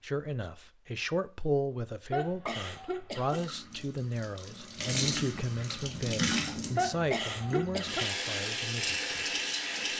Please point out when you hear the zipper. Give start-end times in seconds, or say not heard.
not heard.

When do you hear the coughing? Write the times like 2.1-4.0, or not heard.
2.1-3.5, 6.8-8.1.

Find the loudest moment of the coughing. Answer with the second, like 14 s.
7 s.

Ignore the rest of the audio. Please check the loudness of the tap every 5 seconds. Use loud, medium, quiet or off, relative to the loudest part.
medium, loud.